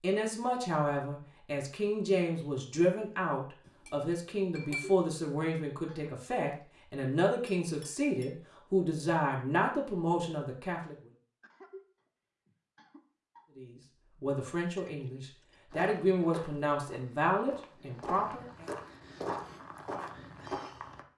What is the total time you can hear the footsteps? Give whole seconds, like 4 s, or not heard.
5 s.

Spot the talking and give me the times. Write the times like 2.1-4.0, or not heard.
0.0-10.9, 13.6-18.6.